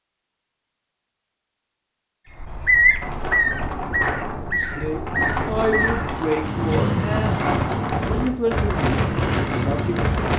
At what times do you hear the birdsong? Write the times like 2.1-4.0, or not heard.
2.3-10.3.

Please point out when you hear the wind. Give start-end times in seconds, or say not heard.
3.0-10.3.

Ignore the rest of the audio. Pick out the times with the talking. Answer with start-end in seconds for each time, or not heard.
4.4-7.5, 8.1-10.3.